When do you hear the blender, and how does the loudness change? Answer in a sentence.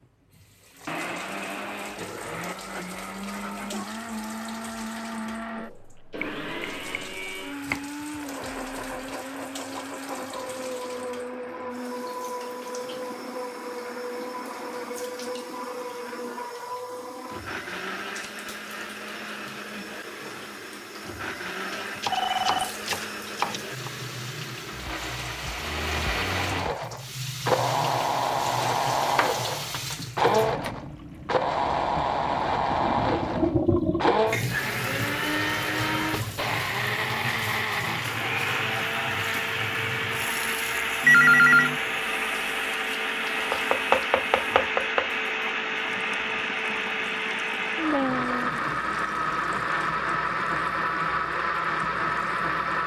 You can hear the blender from 0.0 to 52.8 s, getting louder.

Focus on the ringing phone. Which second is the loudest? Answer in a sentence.
The volume of the ringing phone peaks at 41 seconds.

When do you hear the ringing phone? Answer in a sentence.
You can hear the ringing phone from 6.2 to 7.2 s, from 22.1 to 22.8 s and from 41.0 to 41.8 s.